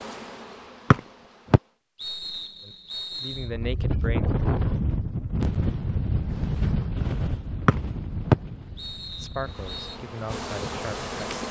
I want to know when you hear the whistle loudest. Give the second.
8 s.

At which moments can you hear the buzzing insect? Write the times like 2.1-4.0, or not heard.
0.0-1.8, 9.4-11.4.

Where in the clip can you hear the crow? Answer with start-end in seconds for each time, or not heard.
not heard.